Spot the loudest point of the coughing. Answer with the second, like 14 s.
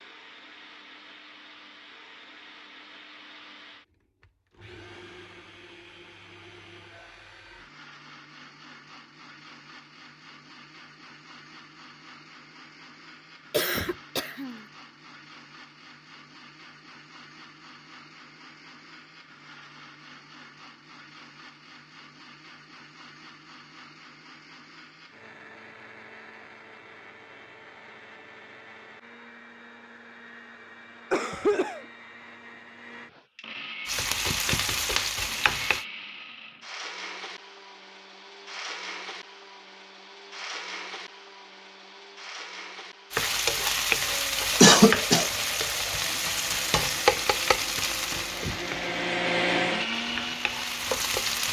45 s.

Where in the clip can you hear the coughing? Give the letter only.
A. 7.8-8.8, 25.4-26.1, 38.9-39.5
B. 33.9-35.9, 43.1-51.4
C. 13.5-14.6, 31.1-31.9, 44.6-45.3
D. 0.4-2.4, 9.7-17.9
C.